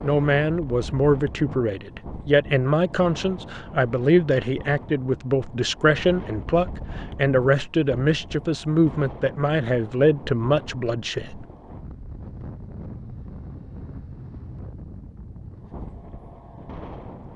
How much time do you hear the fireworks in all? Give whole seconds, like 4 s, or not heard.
not heard.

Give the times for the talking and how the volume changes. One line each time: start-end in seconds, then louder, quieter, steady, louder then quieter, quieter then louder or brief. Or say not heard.
0.0-11.4 steady.